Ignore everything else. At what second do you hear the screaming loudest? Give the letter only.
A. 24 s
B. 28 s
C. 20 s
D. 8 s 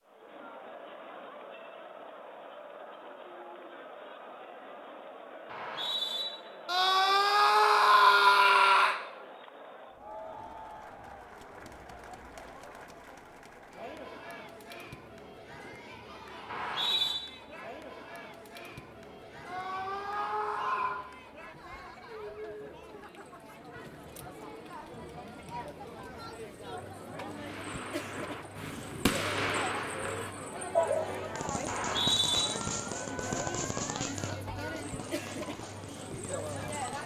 D.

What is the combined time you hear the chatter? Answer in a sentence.
You can hear the chatter for 37 seconds altogether.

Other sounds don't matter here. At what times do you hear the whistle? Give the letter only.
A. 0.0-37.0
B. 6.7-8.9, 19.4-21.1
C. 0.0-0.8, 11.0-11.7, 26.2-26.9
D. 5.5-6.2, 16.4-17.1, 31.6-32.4
D.